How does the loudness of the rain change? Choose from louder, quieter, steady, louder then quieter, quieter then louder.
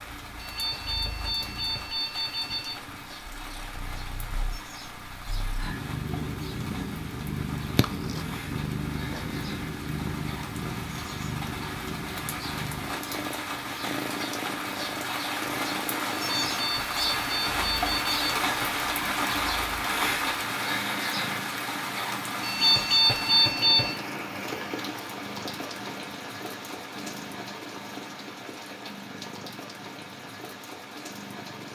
louder then quieter.